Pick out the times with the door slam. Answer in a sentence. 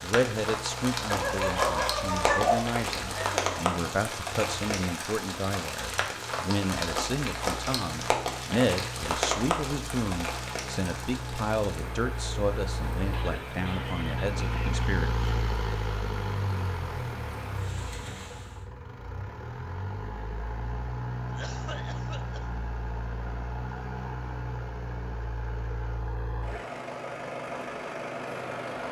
You can't hear the door slam here.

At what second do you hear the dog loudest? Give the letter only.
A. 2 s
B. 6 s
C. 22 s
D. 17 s
A.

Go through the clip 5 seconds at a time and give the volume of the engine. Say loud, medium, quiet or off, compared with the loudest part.
medium, medium, loud, loud, loud, loud.